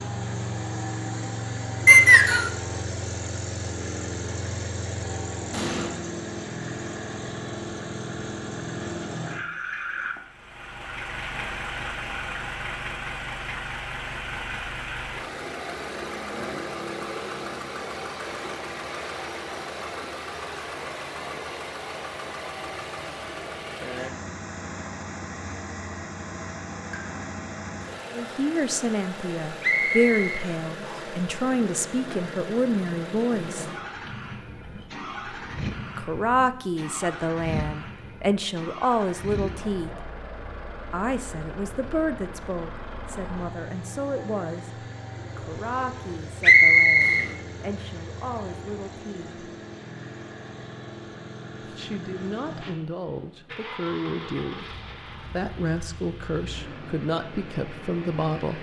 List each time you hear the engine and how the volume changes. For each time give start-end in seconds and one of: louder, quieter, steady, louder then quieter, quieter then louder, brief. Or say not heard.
0.0-58.5 quieter.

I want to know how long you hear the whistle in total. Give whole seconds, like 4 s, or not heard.
3 s.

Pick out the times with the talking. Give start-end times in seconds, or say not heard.
28.1-33.7, 36.0-40.1, 40.9-49.5, 51.6-58.5.